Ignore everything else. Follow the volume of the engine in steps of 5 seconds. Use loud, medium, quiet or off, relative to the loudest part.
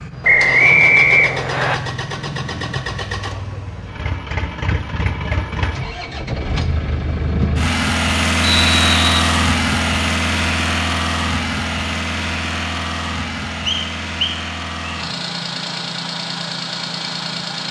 medium, loud, loud, medium.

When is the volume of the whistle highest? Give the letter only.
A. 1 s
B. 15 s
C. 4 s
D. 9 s
A.